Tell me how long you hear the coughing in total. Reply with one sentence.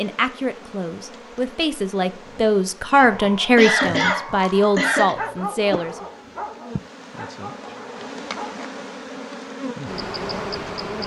The coughing can be heard for 2 seconds in total.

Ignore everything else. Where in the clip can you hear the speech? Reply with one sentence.
You can hear the speech from 0.0 to 6.0 s.